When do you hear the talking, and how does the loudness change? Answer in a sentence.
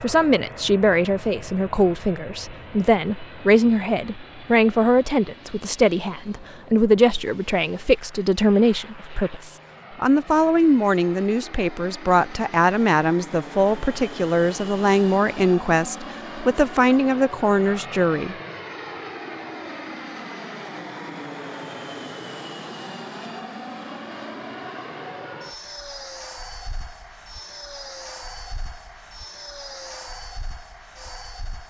The talking can be heard from 0.0 to 18.4 s, at a steady volume.